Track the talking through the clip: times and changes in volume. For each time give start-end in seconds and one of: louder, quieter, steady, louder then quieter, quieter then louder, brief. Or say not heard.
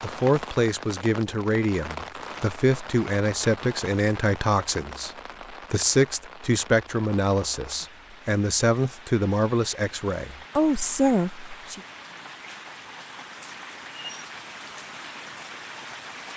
0.0-11.8 steady.